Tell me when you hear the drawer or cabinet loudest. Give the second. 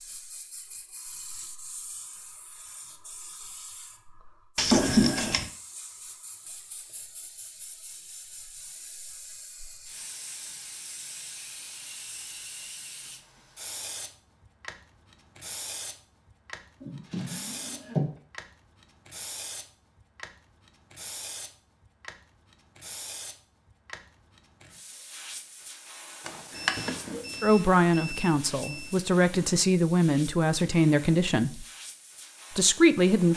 5 s.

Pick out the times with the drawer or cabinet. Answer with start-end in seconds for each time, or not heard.
4.5-5.5, 16.8-18.1, 26.2-27.2.